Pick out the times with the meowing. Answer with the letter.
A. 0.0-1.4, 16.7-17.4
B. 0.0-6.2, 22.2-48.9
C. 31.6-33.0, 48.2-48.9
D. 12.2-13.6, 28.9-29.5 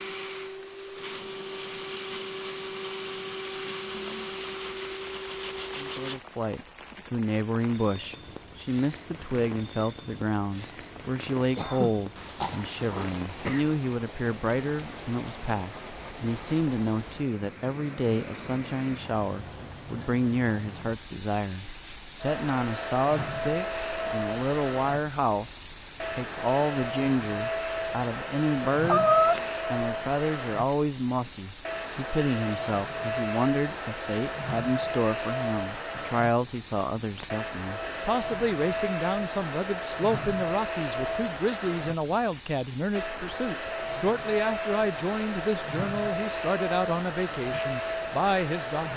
D.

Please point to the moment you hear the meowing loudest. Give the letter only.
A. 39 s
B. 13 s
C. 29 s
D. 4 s
C.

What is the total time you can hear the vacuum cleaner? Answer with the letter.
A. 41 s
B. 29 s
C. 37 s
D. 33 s
D.